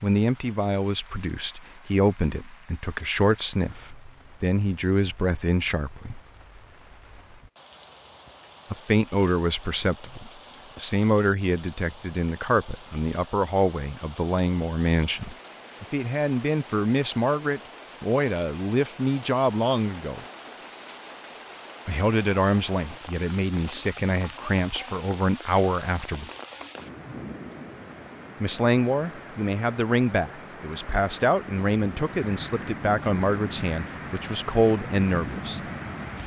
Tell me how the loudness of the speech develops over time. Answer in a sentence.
The volume of the speech stays about the same.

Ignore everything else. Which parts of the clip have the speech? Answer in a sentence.
You can hear the speech from 0.0 to 6.2 s, from 8.7 to 20.2 s, from 21.9 to 26.2 s and from 28.4 to 35.6 s.